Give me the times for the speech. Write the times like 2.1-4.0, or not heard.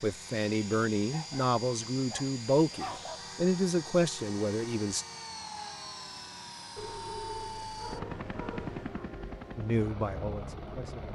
0.0-5.0, 9.6-11.1.